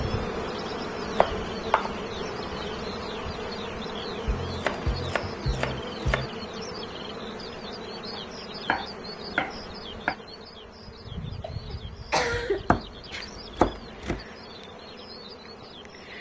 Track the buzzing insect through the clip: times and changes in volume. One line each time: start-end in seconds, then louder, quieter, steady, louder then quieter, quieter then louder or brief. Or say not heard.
0.0-16.1 quieter.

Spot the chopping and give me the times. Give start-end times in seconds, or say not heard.
1.1-1.9, 4.2-6.3, 8.1-10.2, 12.3-14.2.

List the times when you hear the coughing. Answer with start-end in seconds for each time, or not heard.
11.4-12.7.